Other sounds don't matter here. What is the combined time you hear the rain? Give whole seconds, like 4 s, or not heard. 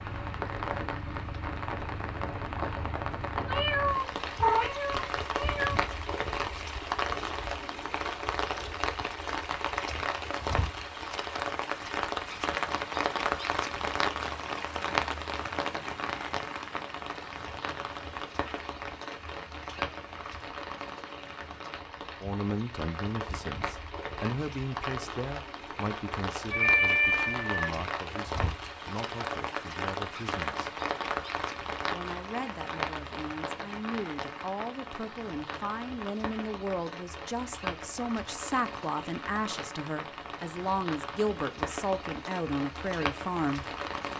44 s.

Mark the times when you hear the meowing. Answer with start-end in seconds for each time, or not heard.
3.5-5.8, 26.5-27.7.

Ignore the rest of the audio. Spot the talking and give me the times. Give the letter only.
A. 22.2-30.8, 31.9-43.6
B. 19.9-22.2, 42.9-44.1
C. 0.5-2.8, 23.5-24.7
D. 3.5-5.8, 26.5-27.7
A.